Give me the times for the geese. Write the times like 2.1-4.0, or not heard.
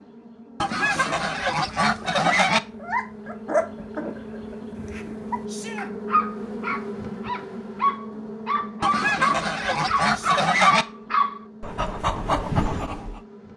0.6-2.6, 8.8-10.8.